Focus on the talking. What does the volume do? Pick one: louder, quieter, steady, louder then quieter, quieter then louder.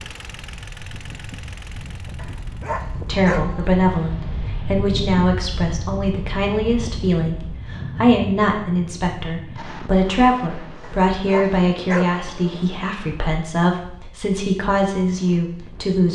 steady.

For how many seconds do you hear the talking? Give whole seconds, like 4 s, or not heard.
13 s.